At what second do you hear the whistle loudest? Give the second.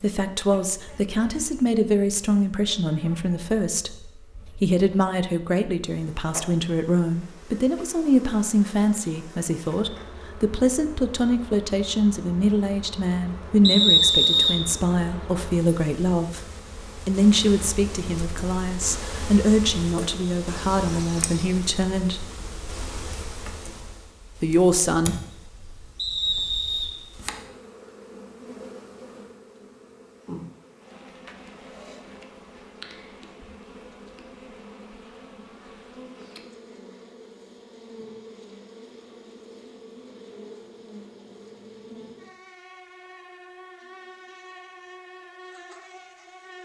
14 s.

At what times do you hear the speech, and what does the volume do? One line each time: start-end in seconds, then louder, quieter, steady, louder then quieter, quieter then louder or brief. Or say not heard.
0.0-22.2 steady
24.4-25.1 brief.